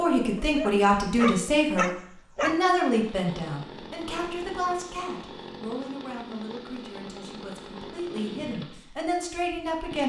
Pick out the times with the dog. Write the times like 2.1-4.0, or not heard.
0.3-2.6.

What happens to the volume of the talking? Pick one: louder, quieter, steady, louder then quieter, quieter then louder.
quieter then louder.